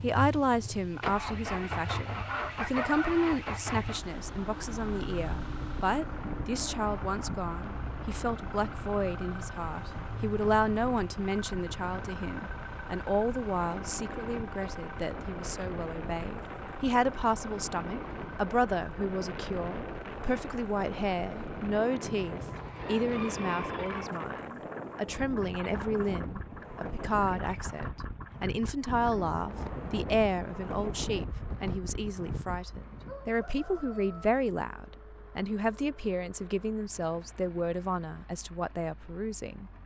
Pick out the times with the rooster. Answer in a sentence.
The rooster can be heard from 1.6 to 3.4 s, from 22.1 to 24.1 s and from 32.8 to 34.2 s.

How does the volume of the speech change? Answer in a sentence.
The loudness of the speech stays about the same.